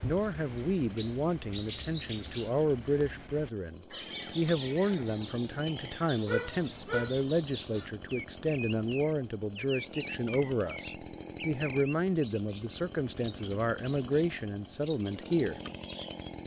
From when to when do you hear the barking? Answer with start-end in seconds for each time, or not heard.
6.2-7.2.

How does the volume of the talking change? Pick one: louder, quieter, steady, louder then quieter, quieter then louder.
steady.